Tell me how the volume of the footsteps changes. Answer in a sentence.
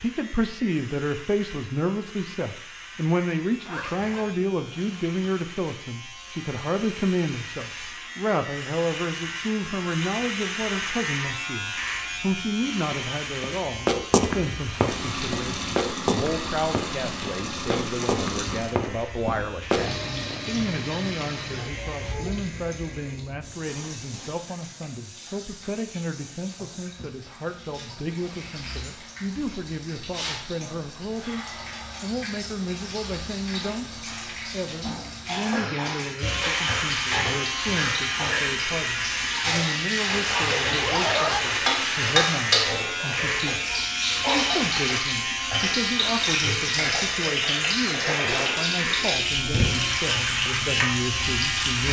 The volume of the footsteps goes down, then up.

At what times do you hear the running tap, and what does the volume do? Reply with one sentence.
The running tap can be heard from 14.8 to 51.8 s, getting quieter then louder.